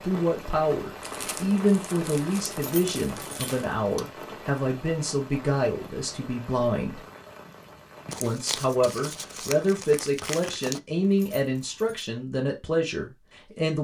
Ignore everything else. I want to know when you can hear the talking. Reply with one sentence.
The talking can be heard from 0.0 to 7.0 s and from 8.1 to 13.8 s.